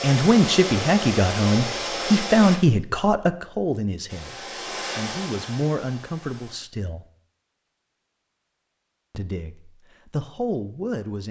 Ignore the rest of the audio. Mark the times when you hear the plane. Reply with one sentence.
You can hear the plane from 0.0 to 2.6 s and from 4.0 to 6.5 s.